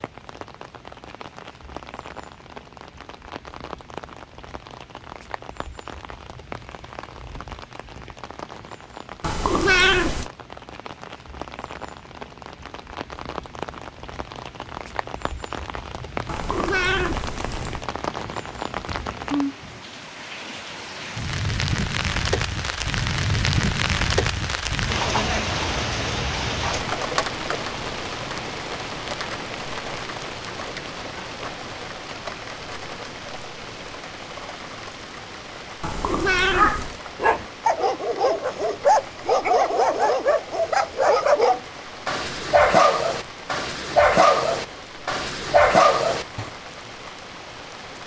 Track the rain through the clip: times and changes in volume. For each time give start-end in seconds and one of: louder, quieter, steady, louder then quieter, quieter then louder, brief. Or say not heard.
0.0-48.0 louder then quieter.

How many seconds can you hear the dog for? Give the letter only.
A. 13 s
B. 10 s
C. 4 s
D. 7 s
B.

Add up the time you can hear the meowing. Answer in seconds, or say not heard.
4 s.